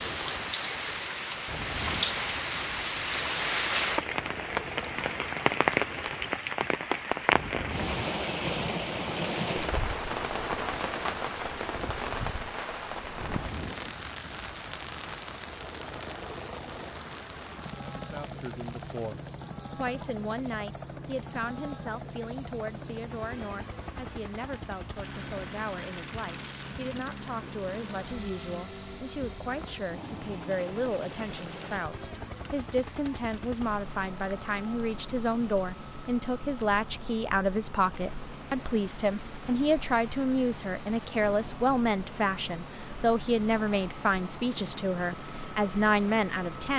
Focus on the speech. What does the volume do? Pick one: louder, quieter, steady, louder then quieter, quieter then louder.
louder.